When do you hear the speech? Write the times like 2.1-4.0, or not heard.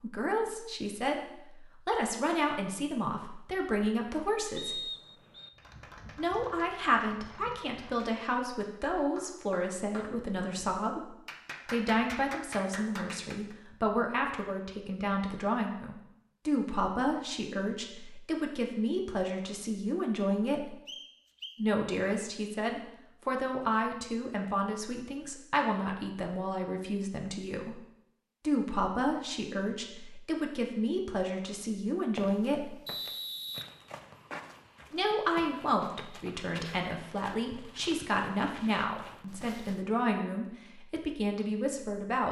0.0-4.8, 6.2-11.1, 11.7-20.8, 21.6-27.8, 28.4-32.8, 34.9-42.2.